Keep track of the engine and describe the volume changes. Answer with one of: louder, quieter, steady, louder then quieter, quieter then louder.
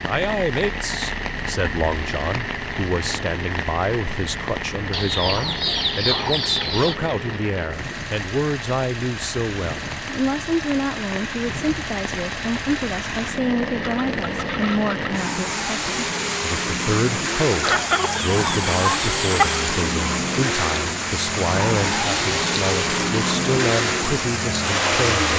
louder.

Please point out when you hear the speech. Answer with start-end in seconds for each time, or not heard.
0.0-25.3.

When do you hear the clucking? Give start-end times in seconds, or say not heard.
4.9-7.0, 17.6-19.6.